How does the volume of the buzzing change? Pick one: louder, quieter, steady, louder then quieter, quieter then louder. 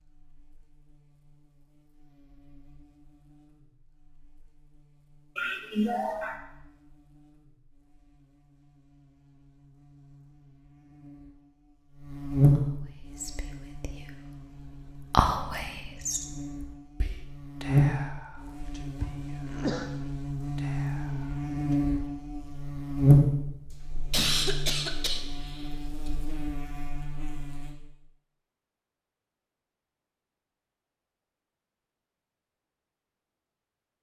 louder.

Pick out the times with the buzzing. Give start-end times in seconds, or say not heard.
0.0-27.8.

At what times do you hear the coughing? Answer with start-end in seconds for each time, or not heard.
5.3-6.3, 19.0-19.9, 24.1-26.1.